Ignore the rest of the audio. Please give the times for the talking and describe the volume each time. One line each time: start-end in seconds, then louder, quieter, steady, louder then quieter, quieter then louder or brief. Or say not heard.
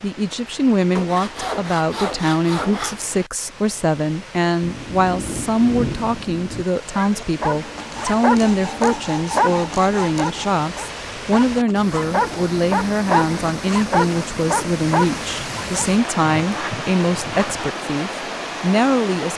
0.0-19.3 steady.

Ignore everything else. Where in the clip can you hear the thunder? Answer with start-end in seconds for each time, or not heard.
4.6-6.7.